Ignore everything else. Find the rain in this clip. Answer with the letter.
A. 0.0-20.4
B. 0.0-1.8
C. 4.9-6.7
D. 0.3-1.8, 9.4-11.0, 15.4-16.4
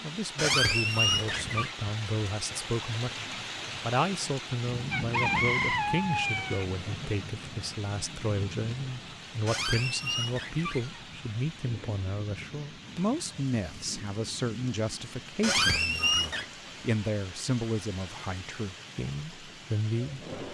A.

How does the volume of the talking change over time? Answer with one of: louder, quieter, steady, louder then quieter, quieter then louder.
steady.